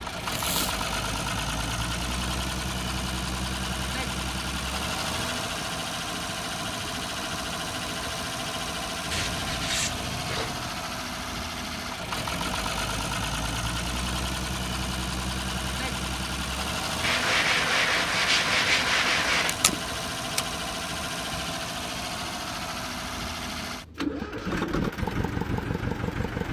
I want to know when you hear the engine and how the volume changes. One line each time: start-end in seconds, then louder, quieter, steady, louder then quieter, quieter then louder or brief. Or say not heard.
0.0-26.4 steady.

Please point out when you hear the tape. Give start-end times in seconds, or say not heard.
0.3-0.8, 19.4-20.4.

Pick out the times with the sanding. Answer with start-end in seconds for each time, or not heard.
9.1-10.7, 17.0-19.6.